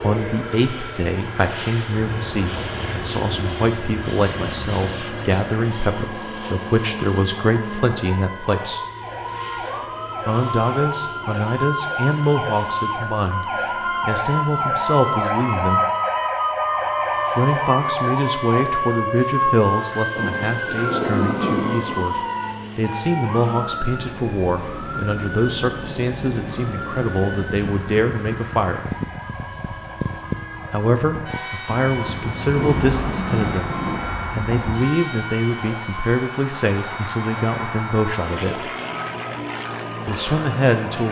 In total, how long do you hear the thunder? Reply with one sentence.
You can hear the thunder for 8 seconds altogether.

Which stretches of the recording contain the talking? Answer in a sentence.
You can hear the talking from 0.0 to 8.8 s, from 10.2 to 15.8 s, from 17.4 to 28.8 s, from 30.7 to 33.7 s, from 34.4 to 38.7 s and from 40.0 to 41.0 s.